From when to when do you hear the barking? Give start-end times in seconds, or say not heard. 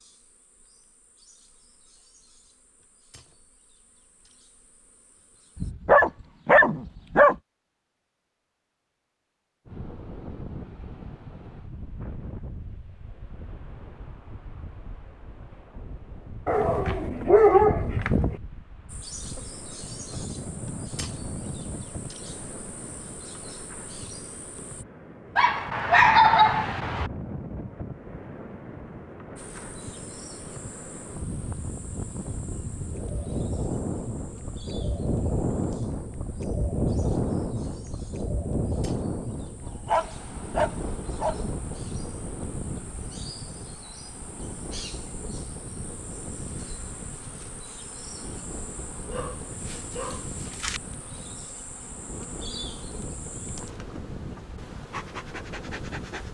5.6-7.3, 16.4-18.4, 25.4-27.1, 39.9-41.5, 49.1-50.8.